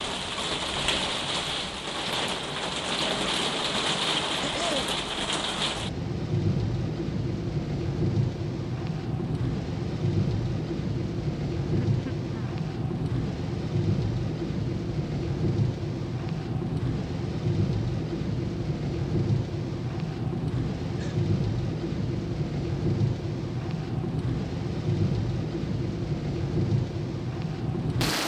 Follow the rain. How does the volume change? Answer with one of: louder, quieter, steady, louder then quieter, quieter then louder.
steady.